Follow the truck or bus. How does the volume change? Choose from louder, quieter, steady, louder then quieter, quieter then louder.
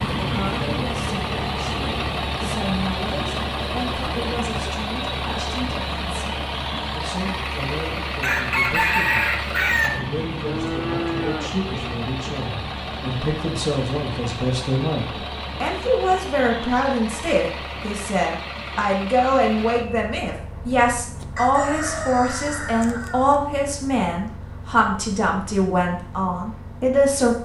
quieter.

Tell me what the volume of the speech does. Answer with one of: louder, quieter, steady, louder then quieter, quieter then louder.
louder.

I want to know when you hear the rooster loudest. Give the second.
9 s.